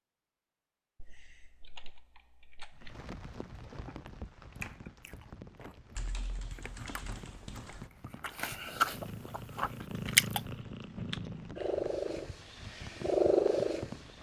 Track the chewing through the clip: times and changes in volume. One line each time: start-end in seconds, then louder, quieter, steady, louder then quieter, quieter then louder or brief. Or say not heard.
3.5-10.4 quieter then louder.